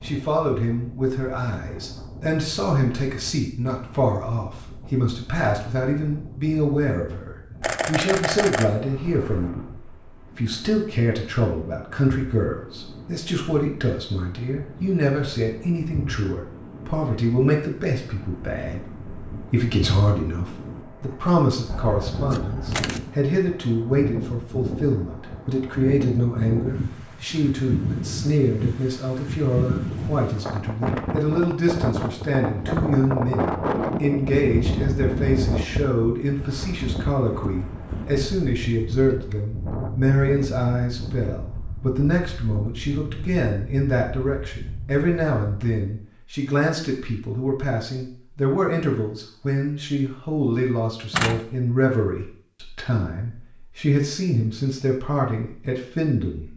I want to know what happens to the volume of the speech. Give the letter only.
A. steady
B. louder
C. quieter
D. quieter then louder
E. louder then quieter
A.